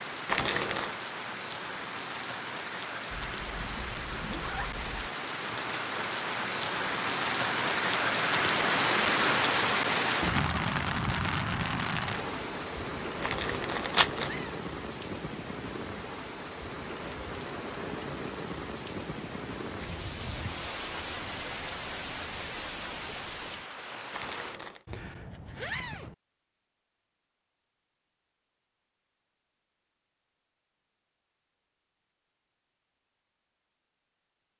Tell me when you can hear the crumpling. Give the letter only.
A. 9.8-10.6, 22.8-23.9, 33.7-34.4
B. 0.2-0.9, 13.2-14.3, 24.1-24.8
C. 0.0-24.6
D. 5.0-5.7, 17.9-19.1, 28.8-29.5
B.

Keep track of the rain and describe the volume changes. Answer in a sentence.
The loudness of the rain goes up, then down.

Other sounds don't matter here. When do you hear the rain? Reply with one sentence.
The rain can be heard from 0.0 to 24.6 s.